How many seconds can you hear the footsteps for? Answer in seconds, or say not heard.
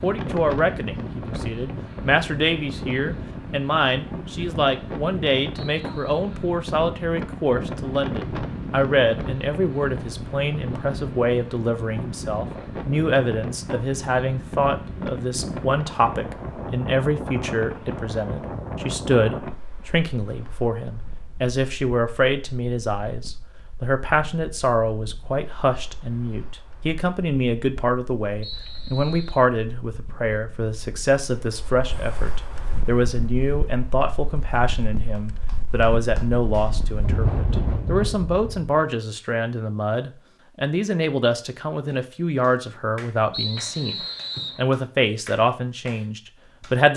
not heard.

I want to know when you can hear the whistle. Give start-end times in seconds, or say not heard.
5.5-6.2, 28.4-29.4, 43.3-44.6.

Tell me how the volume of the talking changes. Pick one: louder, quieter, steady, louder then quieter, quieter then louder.
steady.